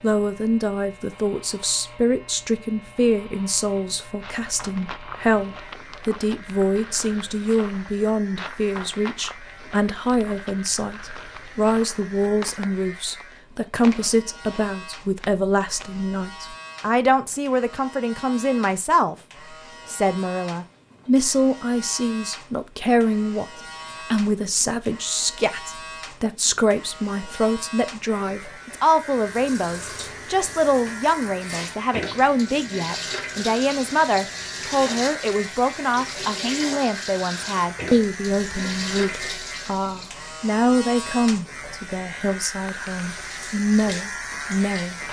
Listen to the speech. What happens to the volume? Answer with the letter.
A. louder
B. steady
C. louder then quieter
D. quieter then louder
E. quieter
B.